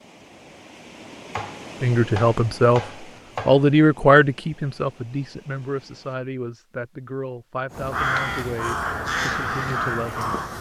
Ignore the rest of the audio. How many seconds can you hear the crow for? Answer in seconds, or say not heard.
3 s.